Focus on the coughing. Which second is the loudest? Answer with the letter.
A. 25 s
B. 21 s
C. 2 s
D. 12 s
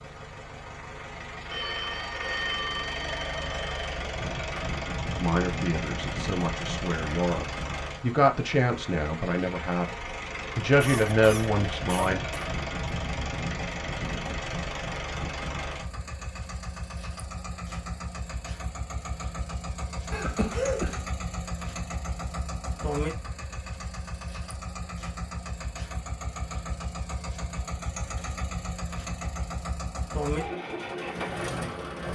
B.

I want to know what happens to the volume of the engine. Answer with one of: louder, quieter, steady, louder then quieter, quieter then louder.
steady.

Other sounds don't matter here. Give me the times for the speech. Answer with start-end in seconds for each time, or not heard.
5.2-12.2.